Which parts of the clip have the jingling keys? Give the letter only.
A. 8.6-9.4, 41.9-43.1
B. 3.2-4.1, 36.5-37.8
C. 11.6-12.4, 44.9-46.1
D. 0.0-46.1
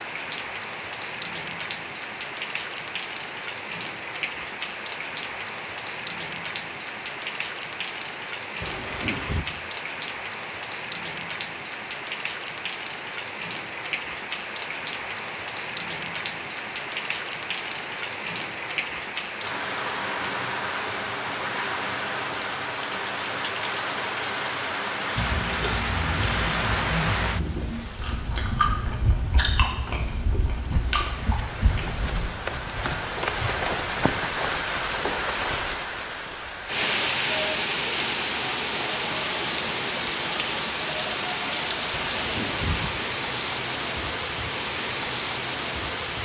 A.